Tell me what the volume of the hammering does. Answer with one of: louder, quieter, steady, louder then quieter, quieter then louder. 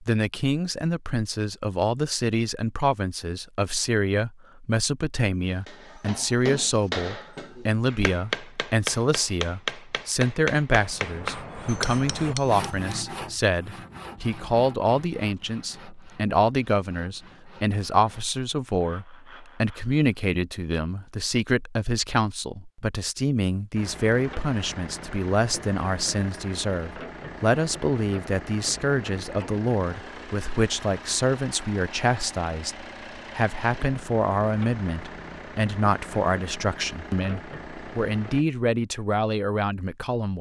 steady.